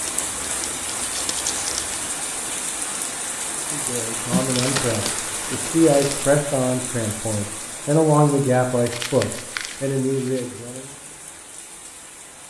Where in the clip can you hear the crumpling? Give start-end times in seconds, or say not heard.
0.0-2.1, 4.3-6.2, 8.8-10.4.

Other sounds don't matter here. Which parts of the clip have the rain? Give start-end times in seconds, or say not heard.
0.0-12.4.